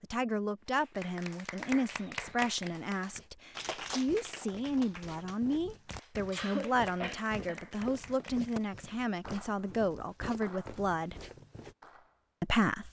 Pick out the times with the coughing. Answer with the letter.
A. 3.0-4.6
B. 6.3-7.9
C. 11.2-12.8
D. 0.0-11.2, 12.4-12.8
B.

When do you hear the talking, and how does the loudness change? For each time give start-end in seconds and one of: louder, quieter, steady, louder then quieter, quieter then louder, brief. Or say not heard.
0.0-11.2 steady
12.4-12.8 brief.